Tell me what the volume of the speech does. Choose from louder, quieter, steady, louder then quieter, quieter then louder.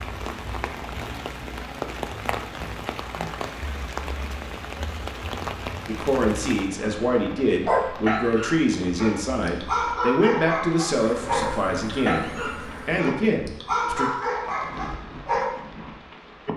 steady.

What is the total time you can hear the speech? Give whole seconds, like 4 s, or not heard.
8 s.